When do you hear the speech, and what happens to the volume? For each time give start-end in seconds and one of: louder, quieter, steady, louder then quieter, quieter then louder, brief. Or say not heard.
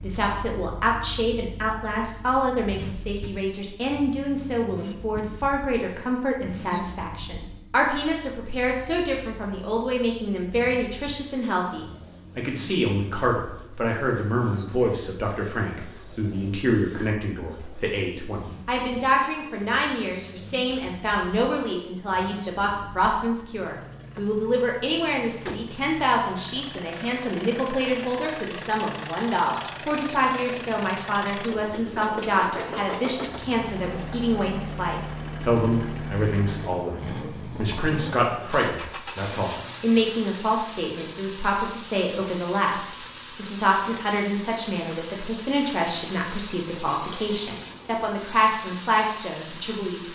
0.0-50.1 steady.